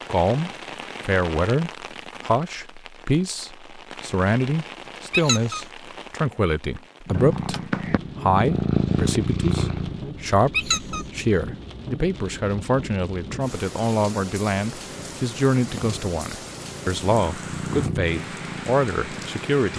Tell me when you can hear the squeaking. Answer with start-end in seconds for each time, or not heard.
5.1-5.7, 10.5-11.1.